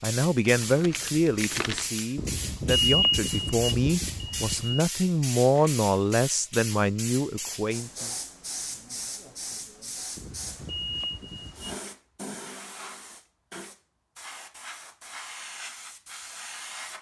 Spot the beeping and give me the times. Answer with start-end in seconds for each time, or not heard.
2.1-4.8, 10.2-11.8.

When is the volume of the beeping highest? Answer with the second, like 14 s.
3 s.